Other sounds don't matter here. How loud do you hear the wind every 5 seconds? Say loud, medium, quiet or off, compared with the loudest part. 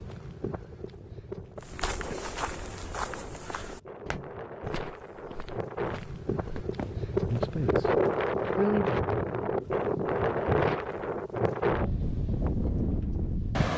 quiet, loud, loud.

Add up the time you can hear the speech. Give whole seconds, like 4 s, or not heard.
2 s.